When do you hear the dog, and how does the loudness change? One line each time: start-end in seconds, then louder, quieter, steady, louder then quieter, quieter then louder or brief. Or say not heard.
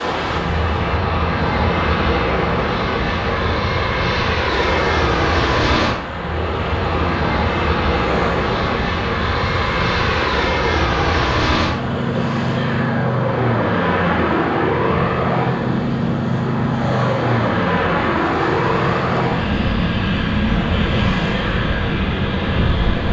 not heard.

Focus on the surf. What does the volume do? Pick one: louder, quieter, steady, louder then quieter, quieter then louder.
steady.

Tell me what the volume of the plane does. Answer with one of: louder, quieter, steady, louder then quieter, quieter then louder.
steady.